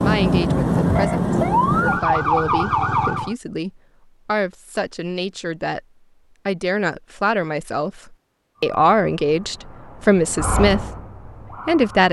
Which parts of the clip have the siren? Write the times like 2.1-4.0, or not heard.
0.0-3.4, 8.6-12.0.